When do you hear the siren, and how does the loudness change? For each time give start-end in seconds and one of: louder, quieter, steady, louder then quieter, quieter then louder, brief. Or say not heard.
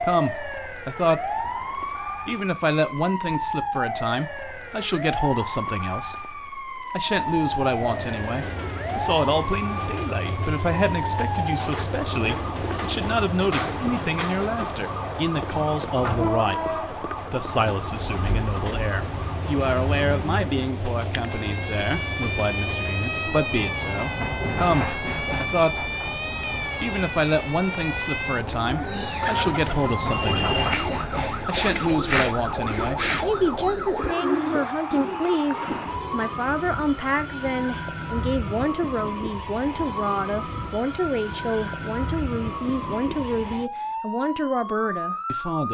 0.0-45.6 steady.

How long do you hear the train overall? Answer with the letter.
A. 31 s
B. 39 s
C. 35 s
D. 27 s
D.